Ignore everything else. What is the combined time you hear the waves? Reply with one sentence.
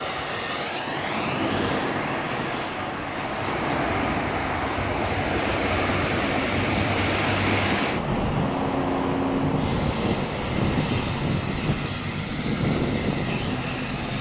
You can hear the waves for 14 seconds altogether.